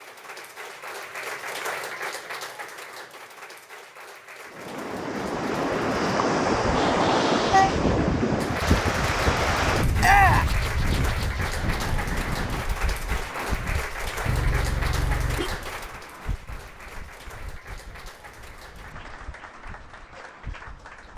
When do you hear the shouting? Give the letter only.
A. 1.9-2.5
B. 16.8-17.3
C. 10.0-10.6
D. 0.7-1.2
C.